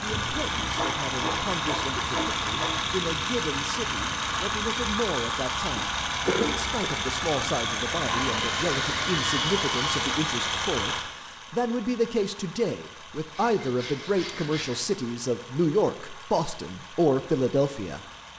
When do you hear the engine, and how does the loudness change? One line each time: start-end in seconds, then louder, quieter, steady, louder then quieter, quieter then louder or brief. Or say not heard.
0.0-18.3 quieter.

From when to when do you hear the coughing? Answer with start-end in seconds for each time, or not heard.
5.8-7.0.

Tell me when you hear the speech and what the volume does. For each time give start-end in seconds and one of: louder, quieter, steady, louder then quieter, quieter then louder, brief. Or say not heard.
0.0-18.0 louder.